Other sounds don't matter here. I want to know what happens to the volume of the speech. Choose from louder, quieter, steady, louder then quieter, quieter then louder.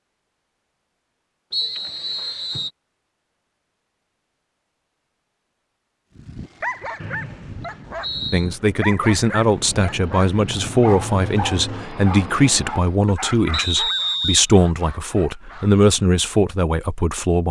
steady.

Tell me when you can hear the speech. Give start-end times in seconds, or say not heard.
8.3-17.4.